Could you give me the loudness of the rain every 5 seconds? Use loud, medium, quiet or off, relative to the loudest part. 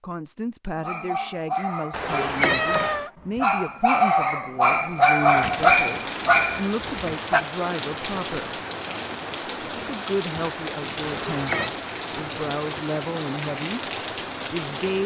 off, loud, loud.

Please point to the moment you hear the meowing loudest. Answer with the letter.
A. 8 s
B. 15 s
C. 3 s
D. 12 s
C.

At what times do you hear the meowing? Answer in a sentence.
The meowing can be heard from 1.9 to 3.1 s and from 11.0 to 11.7 s.